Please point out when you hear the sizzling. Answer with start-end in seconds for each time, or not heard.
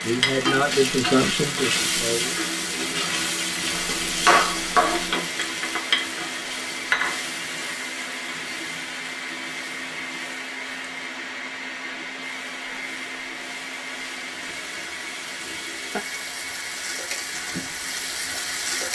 0.0-18.9.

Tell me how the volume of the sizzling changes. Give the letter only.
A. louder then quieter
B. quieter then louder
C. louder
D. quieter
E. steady
B.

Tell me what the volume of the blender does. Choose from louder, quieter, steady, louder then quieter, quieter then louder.
steady.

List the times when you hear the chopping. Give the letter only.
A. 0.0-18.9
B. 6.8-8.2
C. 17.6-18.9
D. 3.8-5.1
D.